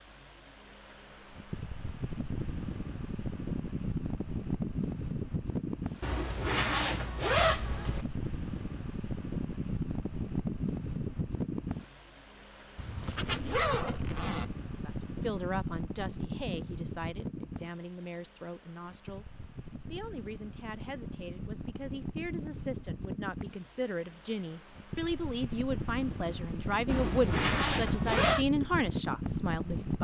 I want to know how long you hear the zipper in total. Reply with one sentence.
You can hear the zipper for 5 seconds altogether.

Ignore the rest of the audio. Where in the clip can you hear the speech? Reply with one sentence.
You can hear the speech from 14.8 to 29.9 s.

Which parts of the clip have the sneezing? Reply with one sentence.
You can't hear the sneezing here.